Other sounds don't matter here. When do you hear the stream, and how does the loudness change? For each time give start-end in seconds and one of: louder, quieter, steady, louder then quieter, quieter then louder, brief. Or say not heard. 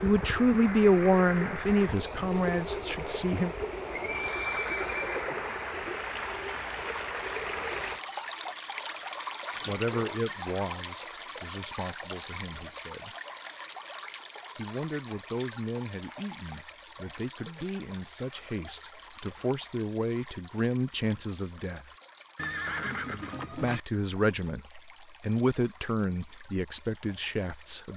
0.0-27.9 quieter.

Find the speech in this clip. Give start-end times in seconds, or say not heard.
0.0-3.5, 9.7-13.2, 14.6-21.9, 23.5-27.9.